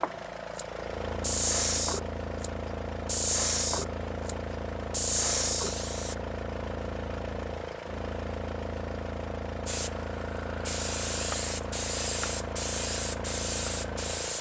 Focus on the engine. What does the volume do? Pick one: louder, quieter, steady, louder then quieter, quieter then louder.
steady.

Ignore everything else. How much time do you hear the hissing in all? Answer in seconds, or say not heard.
11 s.